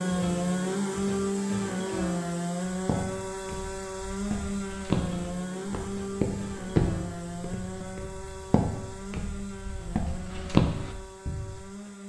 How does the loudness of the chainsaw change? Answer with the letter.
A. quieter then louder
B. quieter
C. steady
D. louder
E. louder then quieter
B.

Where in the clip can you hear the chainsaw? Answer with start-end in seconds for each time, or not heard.
0.0-12.0.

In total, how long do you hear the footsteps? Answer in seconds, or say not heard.
9 s.